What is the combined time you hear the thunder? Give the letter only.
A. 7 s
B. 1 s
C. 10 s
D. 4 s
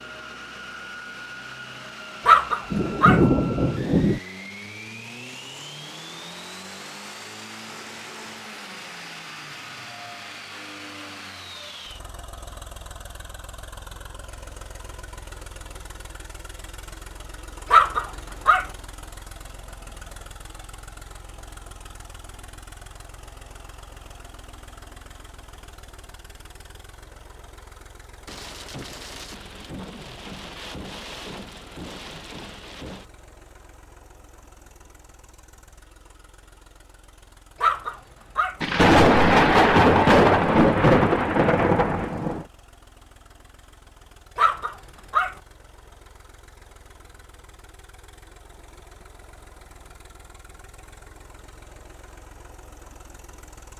C.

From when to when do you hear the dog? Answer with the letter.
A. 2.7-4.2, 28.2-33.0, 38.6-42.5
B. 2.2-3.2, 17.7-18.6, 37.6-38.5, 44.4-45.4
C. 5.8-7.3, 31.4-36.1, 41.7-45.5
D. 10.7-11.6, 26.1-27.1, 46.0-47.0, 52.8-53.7
B.